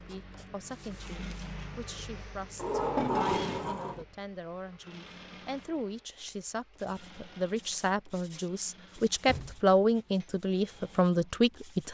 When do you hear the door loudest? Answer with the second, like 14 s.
3 s.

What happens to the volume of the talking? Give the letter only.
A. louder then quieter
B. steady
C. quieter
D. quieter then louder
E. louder
E.